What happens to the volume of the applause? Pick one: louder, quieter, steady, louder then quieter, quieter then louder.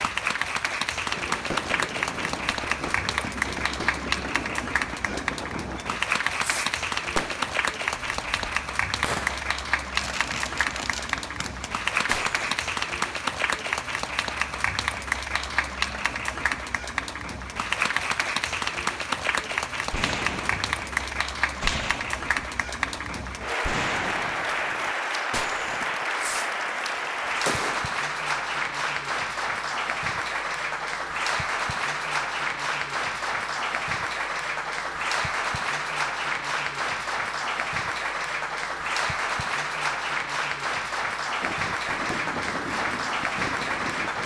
steady.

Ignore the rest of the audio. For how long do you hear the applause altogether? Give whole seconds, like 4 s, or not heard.
44 s.